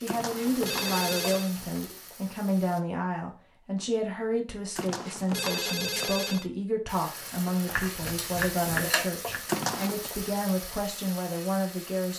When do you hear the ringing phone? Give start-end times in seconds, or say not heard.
0.1-1.5, 4.8-6.5, 9.4-10.1.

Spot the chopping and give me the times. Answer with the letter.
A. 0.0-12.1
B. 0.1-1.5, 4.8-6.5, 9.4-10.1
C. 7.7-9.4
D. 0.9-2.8
C.